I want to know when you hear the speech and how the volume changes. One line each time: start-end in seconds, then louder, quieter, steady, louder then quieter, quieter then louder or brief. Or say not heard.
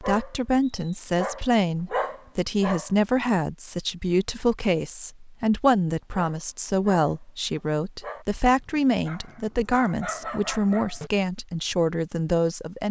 0.0-12.8 steady.